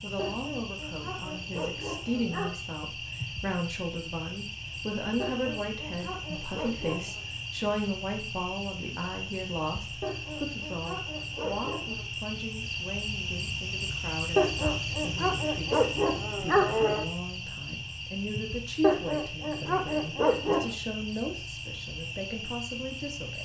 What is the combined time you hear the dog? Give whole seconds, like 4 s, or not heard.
11 s.